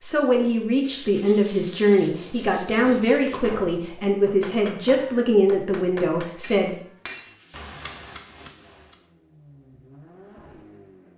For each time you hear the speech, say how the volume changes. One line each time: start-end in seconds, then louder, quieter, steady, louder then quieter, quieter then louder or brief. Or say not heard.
0.0-6.8 steady.